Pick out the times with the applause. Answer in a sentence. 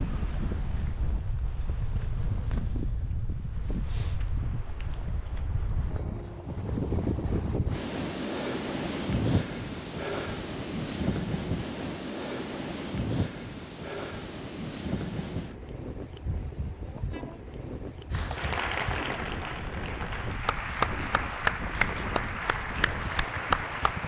You can hear the applause from 18.1 to 24.0 s.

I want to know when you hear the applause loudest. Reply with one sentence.
The loudest moment of the applause is at 21 seconds.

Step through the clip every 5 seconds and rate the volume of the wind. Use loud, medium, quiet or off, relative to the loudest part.
medium, loud, loud, medium, medium.